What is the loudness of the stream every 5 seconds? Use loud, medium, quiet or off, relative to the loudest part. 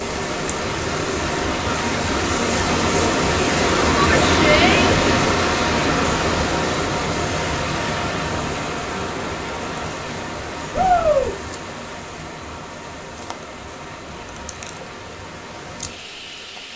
loud, loud, quiet, quiet.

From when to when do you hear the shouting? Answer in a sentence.
You can hear the shouting from 4.0 to 5.0 s and from 10.7 to 11.3 s.